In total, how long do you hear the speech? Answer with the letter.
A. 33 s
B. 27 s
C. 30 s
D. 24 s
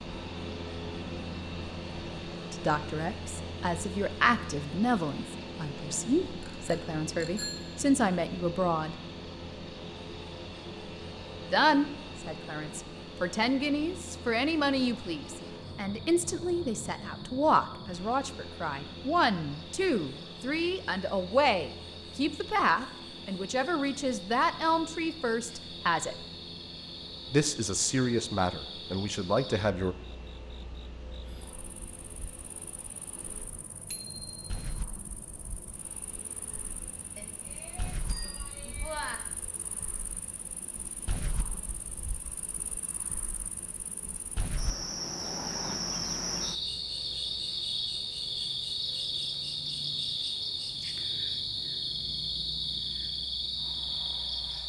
D.